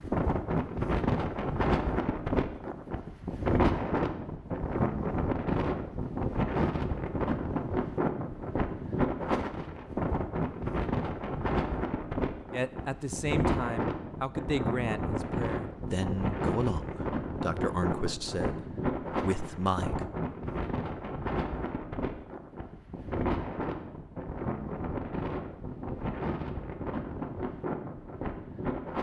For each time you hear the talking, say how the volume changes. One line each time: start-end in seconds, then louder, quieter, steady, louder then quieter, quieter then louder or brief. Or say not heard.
12.5-20.1 steady.